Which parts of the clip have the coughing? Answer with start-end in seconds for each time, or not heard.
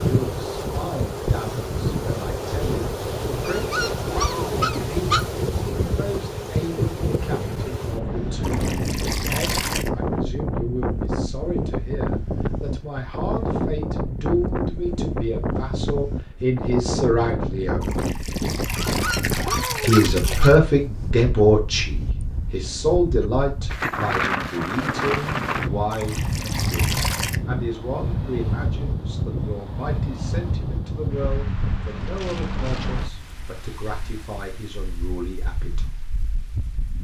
not heard.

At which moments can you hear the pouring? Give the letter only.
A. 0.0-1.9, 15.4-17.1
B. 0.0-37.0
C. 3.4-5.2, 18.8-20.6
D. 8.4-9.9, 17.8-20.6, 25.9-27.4
D.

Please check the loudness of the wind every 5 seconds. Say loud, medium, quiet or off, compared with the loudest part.
loud, loud, loud, loud, loud, loud, medium, quiet.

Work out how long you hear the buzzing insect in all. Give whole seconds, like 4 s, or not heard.
not heard.